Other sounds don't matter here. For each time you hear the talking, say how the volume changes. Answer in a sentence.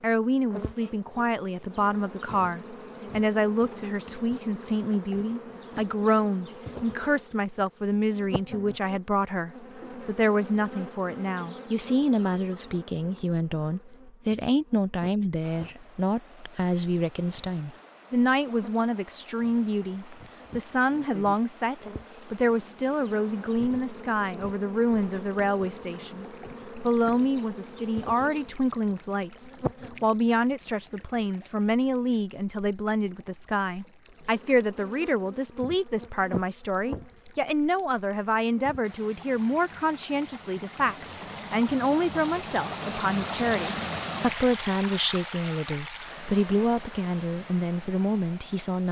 You can hear the talking from 0.0 to 48.8 s, at a steady volume.